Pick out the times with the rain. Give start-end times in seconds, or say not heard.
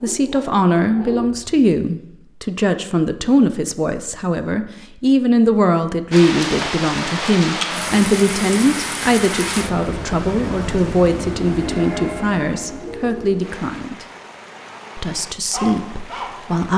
6.1-16.7.